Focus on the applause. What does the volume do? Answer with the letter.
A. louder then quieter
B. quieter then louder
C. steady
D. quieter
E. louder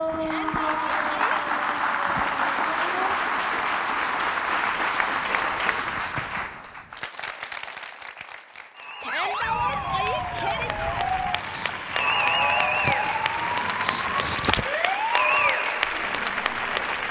B.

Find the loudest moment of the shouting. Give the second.
10 s.